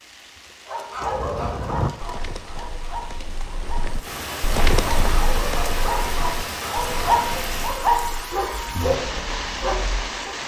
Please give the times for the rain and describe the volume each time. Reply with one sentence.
The rain can be heard from 0.0 to 10.4 s, getting louder.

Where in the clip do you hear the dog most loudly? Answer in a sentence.
The volume of the dog peaks at 8 seconds.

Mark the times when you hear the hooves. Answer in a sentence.
You can hear the hooves from 0.9 to 8.4 s.